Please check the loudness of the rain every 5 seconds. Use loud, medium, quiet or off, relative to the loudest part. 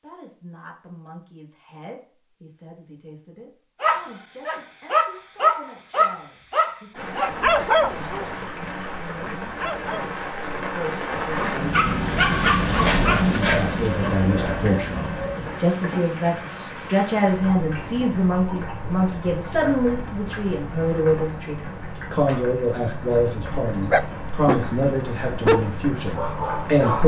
off, medium, loud, medium, medium, medium.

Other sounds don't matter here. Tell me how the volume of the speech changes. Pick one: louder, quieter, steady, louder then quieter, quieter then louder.
louder.